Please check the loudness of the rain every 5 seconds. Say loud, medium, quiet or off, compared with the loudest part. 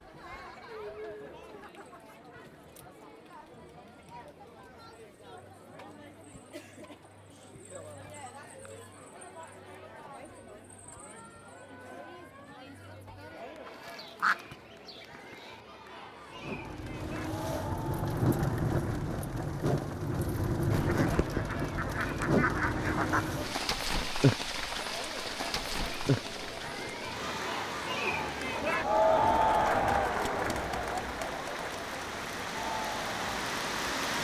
off, off, off, loud, loud, medium, medium.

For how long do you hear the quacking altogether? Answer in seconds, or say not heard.
5 s.